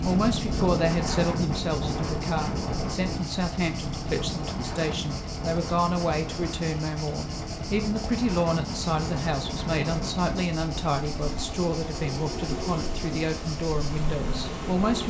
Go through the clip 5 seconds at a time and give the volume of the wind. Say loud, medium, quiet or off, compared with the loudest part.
loud, medium, medium.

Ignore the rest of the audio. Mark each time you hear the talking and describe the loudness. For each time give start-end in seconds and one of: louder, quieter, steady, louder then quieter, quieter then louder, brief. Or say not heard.
0.0-15.0 steady.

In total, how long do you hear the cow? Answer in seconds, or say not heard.
not heard.